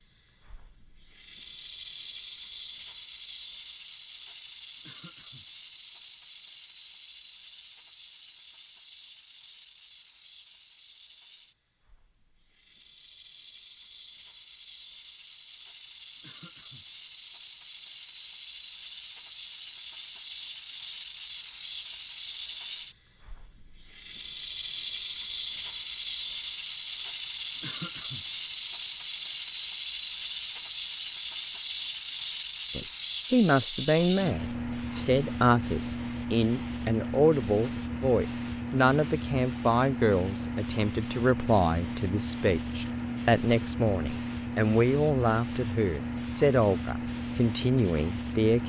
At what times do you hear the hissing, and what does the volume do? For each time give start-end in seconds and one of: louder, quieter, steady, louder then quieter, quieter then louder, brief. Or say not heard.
0.0-48.6 louder.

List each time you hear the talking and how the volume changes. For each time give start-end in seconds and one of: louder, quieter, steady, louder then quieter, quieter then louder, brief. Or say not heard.
32.8-48.6 steady.